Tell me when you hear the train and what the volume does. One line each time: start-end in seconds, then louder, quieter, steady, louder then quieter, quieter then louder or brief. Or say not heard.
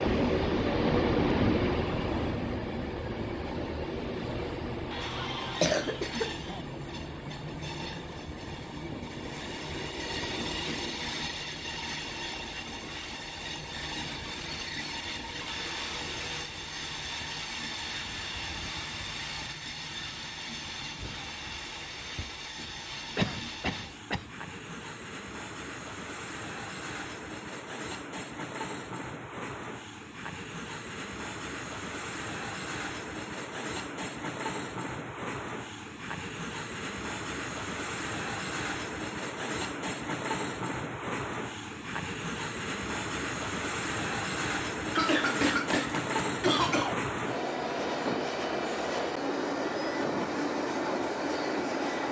0.0-52.0 quieter then louder.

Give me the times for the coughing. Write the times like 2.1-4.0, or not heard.
4.9-6.7, 23.1-24.3, 45.0-47.0.